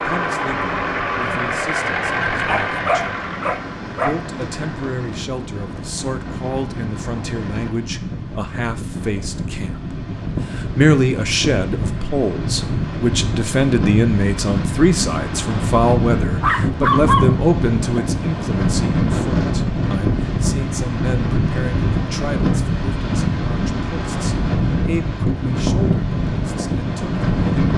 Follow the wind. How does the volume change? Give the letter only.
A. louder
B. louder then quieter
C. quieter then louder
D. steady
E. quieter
A.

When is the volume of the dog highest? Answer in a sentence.
The volume of the dog peaks at 17 seconds.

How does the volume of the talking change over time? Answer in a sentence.
The volume of the talking goes up, then down.